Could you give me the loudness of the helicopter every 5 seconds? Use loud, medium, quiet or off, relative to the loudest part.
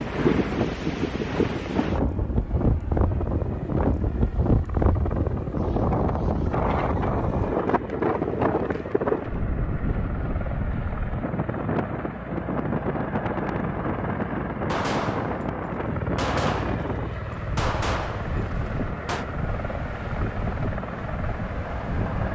medium, medium, loud, loud, loud.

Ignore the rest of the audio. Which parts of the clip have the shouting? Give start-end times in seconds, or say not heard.
not heard.